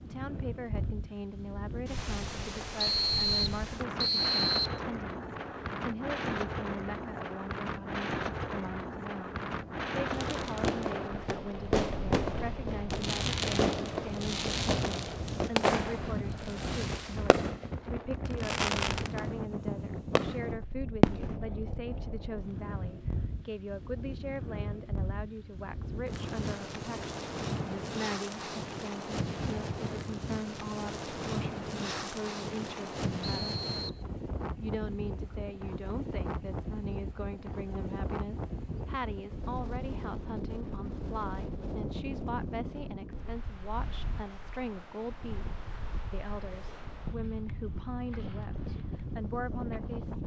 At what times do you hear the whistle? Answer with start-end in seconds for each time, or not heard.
2.8-4.8, 33.2-34.0.